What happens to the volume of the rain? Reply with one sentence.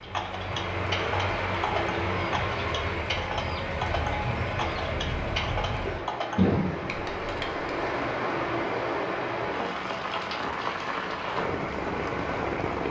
The volume of the rain stays about the same.